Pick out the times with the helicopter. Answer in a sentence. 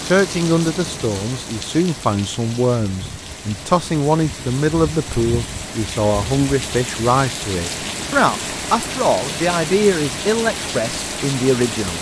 You can't hear the helicopter here.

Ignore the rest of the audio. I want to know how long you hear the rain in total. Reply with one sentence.
You can hear the rain for 12 seconds altogether.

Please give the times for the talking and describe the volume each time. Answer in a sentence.
You can hear the talking from 0.1 to 11.9 s, at a steady volume.